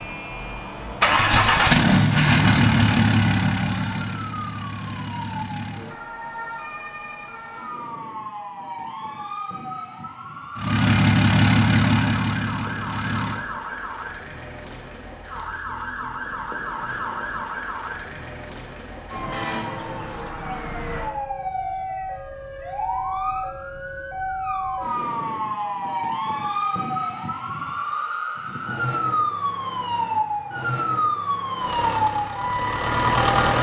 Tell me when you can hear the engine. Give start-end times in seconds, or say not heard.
0.0-6.0, 10.6-13.4, 31.6-33.5.